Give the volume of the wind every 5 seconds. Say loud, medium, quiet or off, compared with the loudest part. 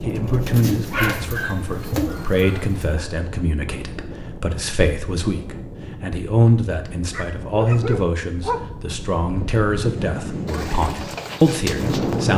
medium, medium, loud.